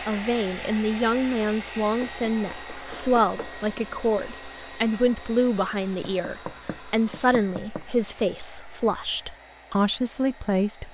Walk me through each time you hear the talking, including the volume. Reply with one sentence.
You can hear the talking from 0.0 to 10.8 s, at a steady volume.